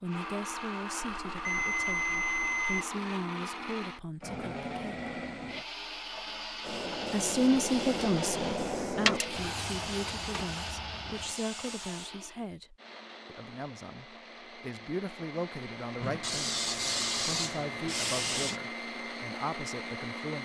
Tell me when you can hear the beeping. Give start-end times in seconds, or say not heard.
1.0-2.9.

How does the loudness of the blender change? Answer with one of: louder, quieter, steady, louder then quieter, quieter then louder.
quieter then louder.